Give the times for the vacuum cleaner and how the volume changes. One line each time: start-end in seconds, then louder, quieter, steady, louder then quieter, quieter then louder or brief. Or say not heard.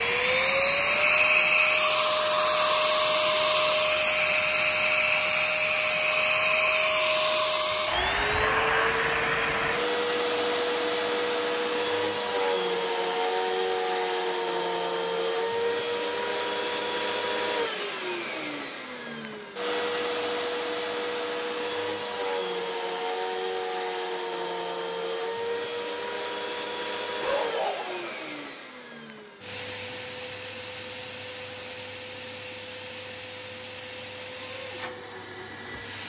0.0-36.0 quieter.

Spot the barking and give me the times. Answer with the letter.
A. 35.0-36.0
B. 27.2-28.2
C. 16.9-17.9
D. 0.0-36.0
B.